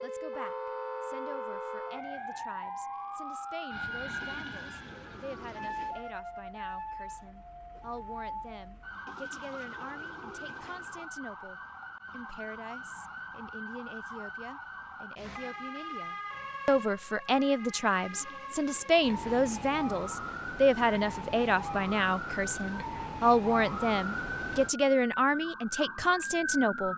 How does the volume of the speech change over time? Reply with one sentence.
The volume of the speech goes up.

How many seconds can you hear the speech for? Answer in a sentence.
You can hear the speech for 27 seconds altogether.